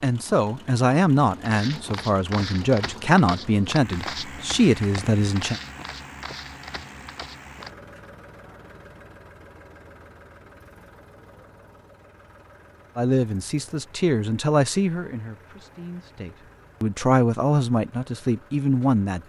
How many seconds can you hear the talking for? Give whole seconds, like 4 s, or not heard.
12 s.